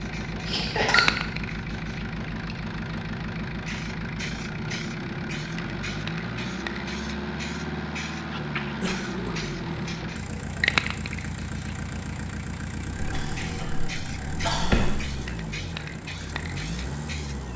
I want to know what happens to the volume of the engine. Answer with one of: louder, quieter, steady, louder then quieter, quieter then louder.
steady.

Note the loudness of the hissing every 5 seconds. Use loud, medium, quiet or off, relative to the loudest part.
loud, medium, loud, medium.